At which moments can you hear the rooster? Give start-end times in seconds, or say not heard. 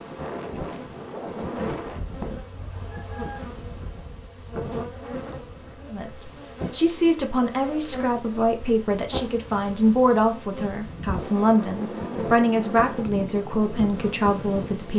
2.5-3.5.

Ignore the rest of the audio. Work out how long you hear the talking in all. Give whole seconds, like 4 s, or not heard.
9 s.